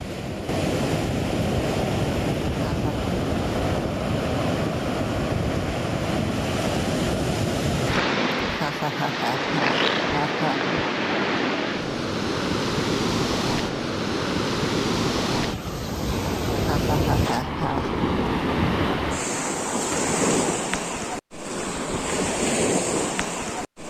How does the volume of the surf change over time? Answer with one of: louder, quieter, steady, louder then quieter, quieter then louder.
steady.